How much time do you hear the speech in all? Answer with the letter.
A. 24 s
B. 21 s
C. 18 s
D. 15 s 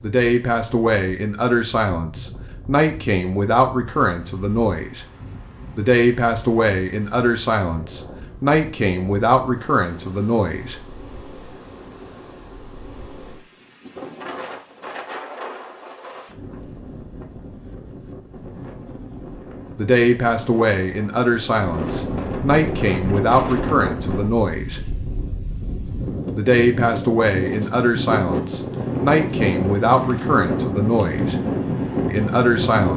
B.